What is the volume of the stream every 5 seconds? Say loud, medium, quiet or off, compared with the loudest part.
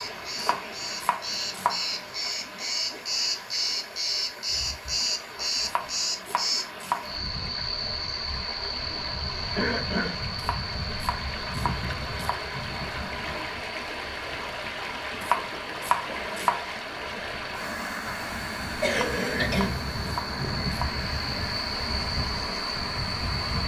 medium, medium, loud, loud, loud.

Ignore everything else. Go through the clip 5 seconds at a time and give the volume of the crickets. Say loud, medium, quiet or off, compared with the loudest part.
loud, loud, medium, medium, loud.